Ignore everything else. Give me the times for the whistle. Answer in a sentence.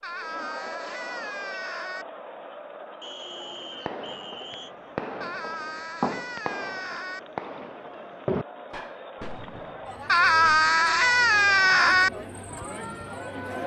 The whistle can be heard from 3.0 to 4.8 s.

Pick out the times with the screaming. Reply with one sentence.
You can hear the screaming from 0.0 to 2.0 s, from 5.2 to 7.2 s and from 10.1 to 12.1 s.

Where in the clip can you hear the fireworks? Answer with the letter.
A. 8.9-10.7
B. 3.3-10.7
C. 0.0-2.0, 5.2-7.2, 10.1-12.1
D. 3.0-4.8
B.